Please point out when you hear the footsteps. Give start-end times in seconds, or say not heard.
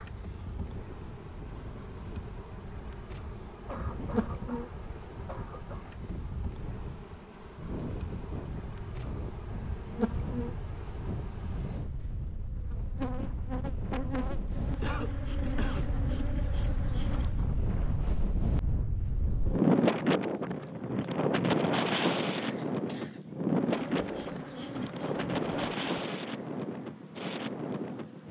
not heard.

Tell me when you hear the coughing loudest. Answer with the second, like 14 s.
15 s.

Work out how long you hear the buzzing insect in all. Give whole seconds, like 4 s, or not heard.
22 s.